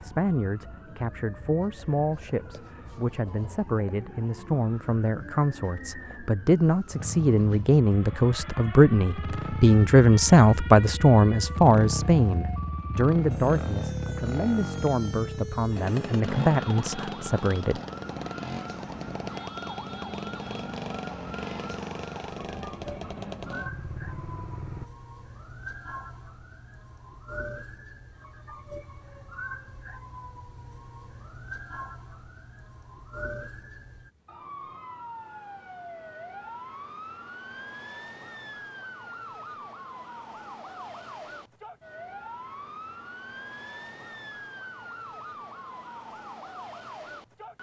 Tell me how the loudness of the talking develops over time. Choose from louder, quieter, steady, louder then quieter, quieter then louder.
louder then quieter.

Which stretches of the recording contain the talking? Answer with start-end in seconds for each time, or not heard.
0.0-17.8.